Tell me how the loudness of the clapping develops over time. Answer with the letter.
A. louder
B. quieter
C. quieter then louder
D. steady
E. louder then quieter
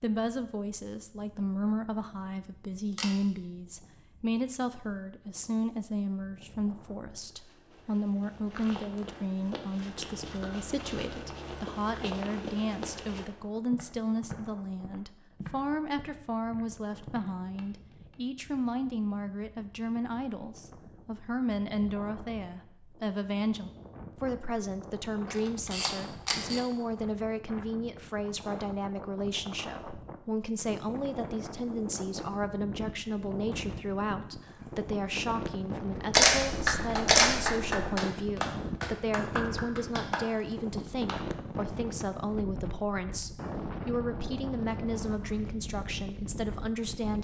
B.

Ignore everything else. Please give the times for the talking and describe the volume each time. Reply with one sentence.
The talking can be heard from 0.0 to 47.1 s, at a steady volume.